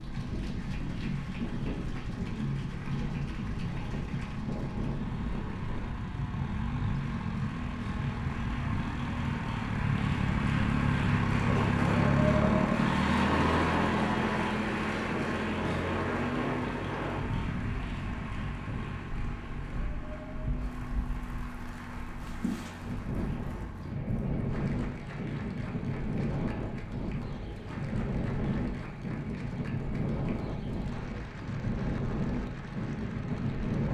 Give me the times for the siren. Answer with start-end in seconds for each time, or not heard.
not heard.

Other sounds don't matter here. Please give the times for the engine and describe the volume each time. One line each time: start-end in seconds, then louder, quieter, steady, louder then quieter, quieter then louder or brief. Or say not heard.
0.0-33.8 louder then quieter.